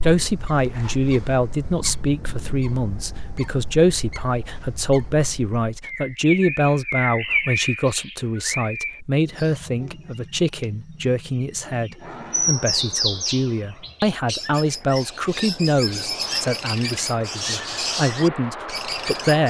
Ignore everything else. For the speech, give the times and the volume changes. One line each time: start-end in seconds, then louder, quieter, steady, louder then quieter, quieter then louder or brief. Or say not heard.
0.0-19.4 steady.